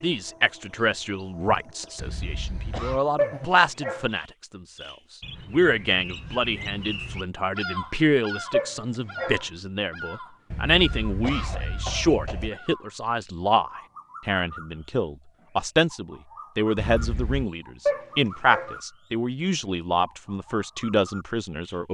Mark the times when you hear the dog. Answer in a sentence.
The dog can be heard from 3.1 to 4.0 s, from 8.5 to 9.4 s and from 17.9 to 18.8 s.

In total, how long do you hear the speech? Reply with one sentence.
You can hear the speech for 21 seconds altogether.